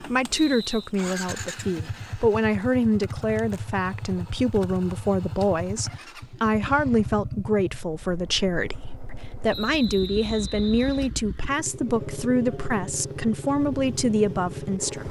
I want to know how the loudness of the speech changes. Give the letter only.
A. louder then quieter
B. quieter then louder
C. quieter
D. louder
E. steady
E.